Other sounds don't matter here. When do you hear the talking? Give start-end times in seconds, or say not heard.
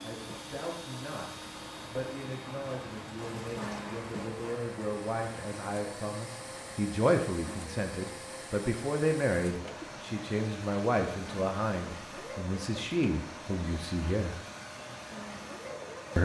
0.0-14.3.